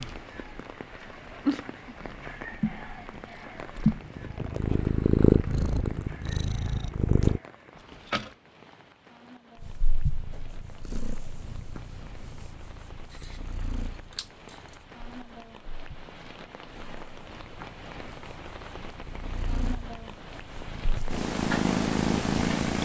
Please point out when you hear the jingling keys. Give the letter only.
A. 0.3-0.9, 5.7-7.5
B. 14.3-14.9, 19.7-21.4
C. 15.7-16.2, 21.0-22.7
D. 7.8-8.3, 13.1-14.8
D.